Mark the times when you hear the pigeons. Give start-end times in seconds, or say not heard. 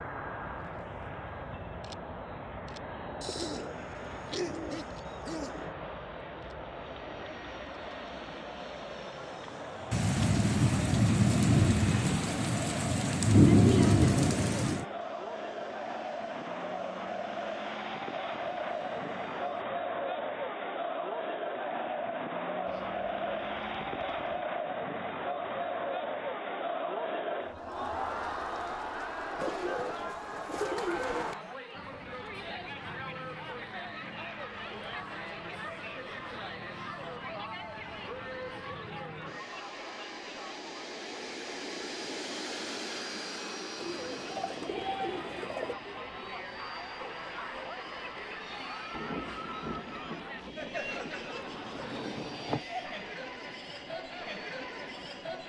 3.2-5.8, 22.6-24.4, 29.4-31.4, 43.8-45.8.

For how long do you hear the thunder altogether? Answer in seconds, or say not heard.
9 s.